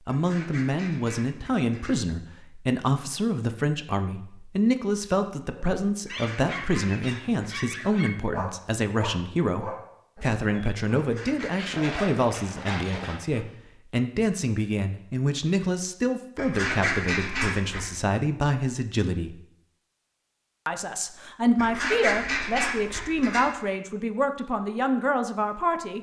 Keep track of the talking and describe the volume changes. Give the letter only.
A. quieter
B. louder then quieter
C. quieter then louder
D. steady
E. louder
D.